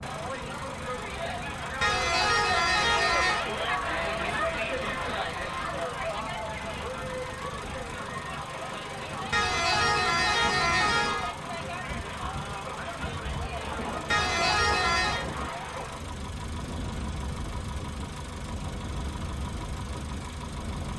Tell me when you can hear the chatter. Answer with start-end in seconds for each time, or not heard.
0.0-16.1.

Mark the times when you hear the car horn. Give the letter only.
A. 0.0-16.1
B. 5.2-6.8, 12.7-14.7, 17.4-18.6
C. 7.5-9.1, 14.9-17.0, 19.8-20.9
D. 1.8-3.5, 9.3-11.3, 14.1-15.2
D.